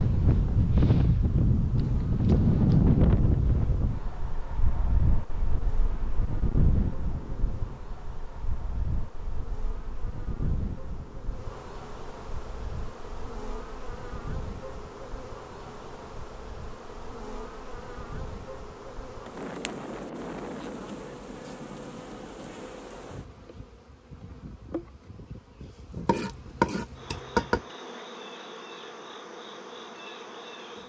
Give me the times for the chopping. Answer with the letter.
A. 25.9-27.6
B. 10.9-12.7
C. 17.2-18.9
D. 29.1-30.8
A.